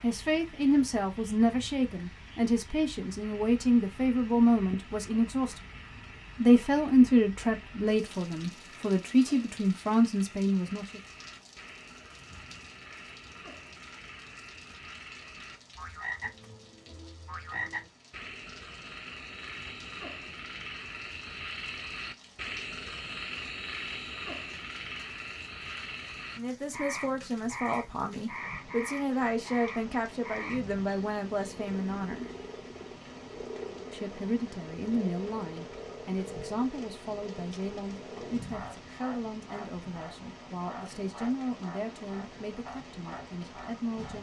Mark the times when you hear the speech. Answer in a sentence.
The speech can be heard from 0.0 to 5.6 s, from 6.3 to 11.0 s, from 26.4 to 32.3 s and from 33.9 to 44.1 s.